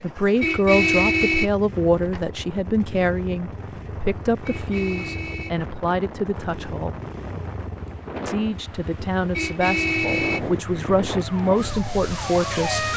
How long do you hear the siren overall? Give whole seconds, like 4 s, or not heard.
2 s.